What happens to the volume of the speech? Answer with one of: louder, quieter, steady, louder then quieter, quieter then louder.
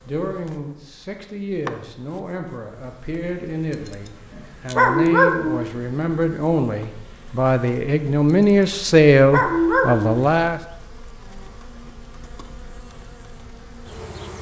louder.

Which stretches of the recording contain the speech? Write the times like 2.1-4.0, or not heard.
0.0-10.6.